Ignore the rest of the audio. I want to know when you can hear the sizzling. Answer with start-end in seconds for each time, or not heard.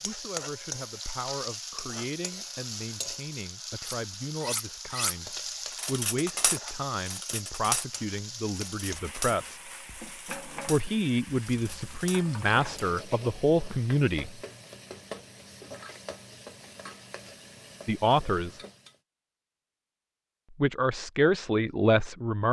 0.0-19.0.